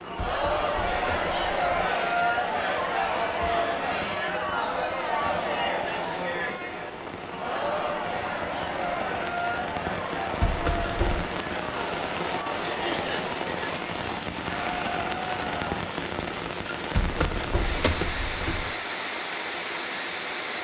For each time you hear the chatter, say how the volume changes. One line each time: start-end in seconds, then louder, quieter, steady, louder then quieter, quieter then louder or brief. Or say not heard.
0.0-15.8 quieter.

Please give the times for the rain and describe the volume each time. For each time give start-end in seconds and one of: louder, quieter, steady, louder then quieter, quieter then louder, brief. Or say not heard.
0.0-20.5 louder.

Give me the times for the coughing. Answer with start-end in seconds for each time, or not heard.
12.7-13.3.